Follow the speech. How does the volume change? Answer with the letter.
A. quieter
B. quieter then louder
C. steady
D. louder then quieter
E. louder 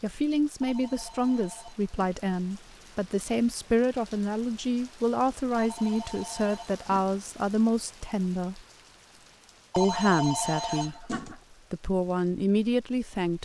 C.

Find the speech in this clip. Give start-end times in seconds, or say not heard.
0.0-8.6, 9.8-13.4.